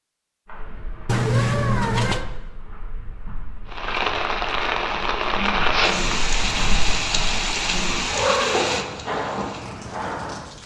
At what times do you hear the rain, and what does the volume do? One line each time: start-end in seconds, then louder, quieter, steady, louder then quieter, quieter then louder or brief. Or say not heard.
3.6-10.6 quieter.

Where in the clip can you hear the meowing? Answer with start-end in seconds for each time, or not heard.
1.1-2.2, 8.1-8.8.